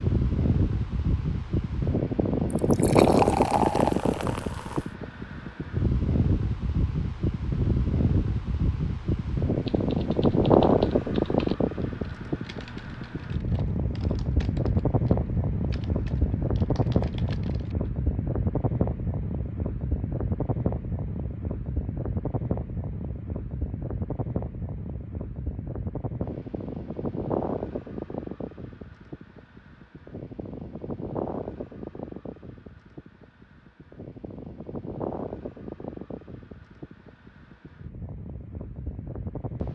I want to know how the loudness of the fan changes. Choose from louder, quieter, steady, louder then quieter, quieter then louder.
quieter.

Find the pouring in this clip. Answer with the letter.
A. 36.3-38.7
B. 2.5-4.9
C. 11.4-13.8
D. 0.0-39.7
B.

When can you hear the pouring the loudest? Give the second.
3 s.